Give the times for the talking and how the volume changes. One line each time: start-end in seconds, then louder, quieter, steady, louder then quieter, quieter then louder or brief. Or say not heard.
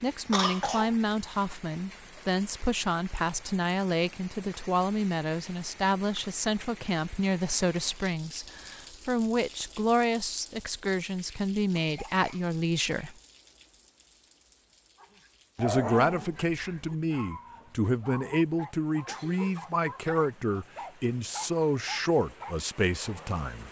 0.0-13.2 steady
15.6-23.6 steady.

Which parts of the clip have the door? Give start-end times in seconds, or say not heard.
not heard.